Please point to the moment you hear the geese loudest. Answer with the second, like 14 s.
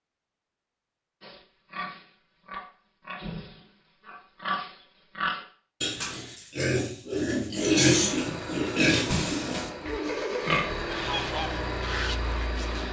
11 s.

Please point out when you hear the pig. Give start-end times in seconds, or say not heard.
1.2-10.9.